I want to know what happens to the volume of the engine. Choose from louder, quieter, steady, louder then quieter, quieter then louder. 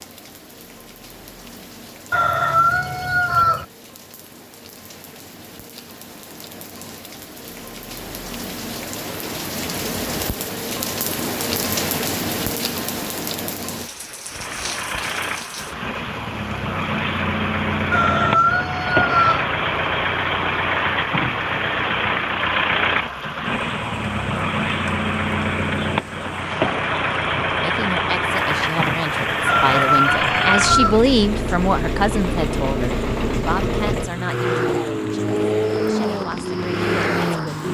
steady.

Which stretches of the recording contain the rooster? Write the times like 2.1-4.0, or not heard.
2.1-3.6, 17.9-19.4, 29.4-31.0.